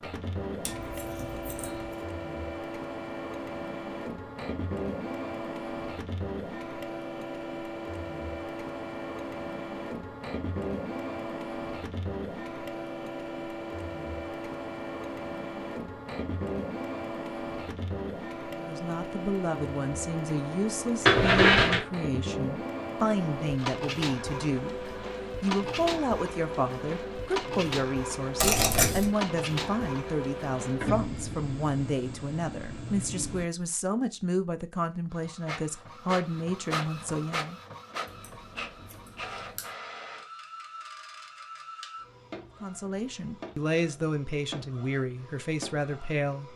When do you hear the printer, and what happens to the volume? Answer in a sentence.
You can hear the printer from 0.0 to 33.5 s, at a steady volume; and from 35.1 to 46.5 s, getting quieter.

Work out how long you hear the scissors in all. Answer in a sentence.
The scissors can be heard for 4 seconds in total.